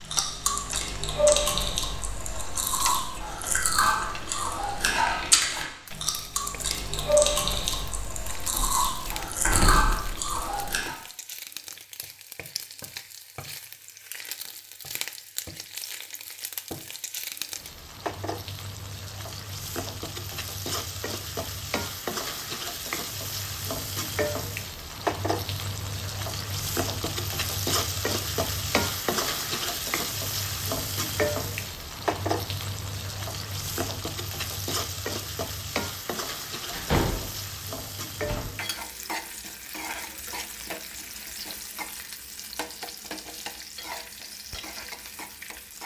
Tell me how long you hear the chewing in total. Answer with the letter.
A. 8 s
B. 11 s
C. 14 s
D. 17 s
B.